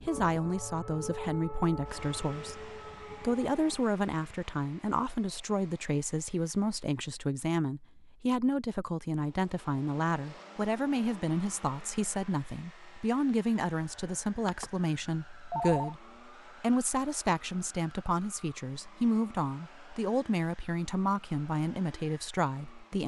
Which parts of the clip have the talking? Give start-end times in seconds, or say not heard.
0.0-23.0.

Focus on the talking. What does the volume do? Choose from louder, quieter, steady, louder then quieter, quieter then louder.
steady.